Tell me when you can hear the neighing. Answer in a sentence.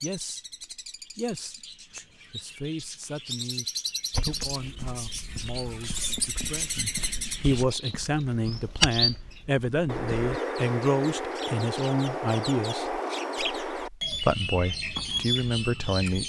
You can't hear the neighing here.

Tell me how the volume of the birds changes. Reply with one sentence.
The volume of the birds goes up.